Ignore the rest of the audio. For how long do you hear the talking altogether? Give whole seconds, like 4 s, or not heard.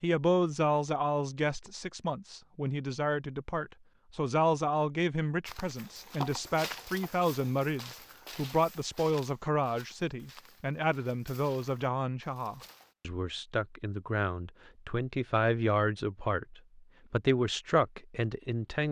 19 s.